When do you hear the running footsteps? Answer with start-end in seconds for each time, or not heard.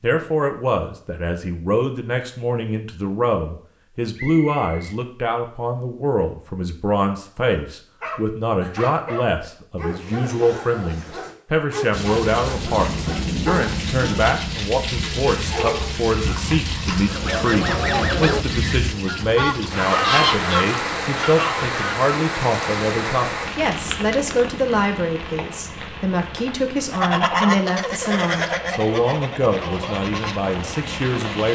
not heard.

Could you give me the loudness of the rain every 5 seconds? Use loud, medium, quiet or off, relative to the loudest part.
off, off, loud, loud, loud, medium, medium.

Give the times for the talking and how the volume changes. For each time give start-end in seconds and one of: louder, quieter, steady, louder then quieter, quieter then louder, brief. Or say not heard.
0.0-31.4 steady.